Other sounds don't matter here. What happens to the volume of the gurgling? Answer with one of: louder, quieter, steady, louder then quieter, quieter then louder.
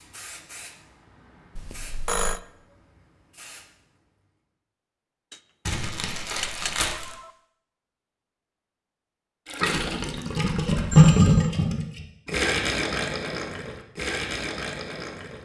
louder then quieter.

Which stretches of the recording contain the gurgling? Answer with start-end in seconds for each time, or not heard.
9.4-15.3.